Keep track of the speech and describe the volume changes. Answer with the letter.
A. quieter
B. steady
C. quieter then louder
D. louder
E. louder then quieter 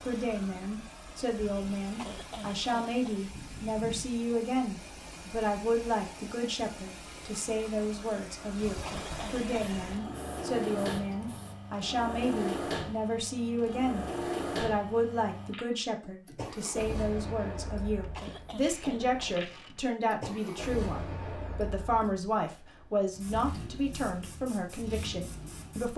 B.